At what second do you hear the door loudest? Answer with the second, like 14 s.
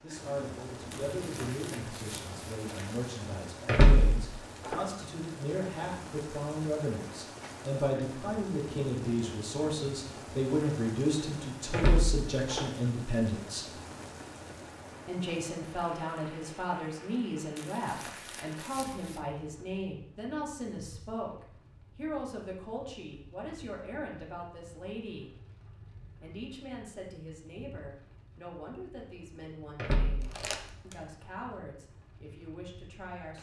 4 s.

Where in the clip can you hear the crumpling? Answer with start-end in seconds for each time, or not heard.
0.9-3.1, 17.6-19.2, 30.2-31.1.